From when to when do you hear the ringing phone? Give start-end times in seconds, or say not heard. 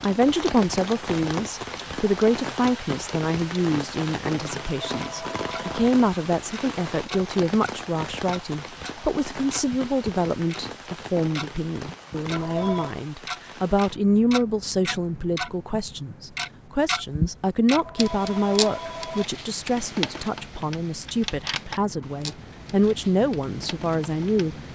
4.6-5.8, 12.3-12.9, 17.7-19.2.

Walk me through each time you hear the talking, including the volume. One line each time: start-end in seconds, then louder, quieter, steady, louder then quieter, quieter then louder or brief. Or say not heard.
0.0-24.6 steady.